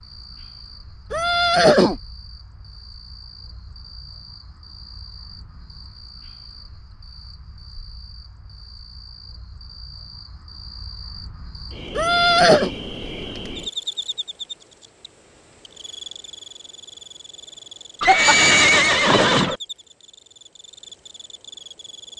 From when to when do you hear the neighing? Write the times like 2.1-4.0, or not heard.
1.1-1.9, 11.9-12.7, 18.0-19.6.